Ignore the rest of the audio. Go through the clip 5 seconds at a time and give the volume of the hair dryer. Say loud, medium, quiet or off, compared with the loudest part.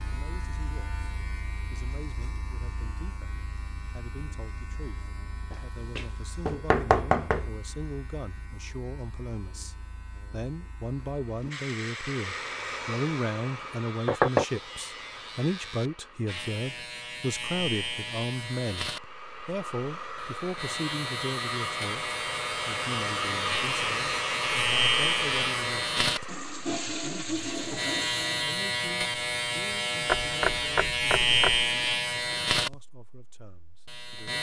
off, off, medium, medium, loud, loud, off.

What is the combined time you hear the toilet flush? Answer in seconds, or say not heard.
2 s.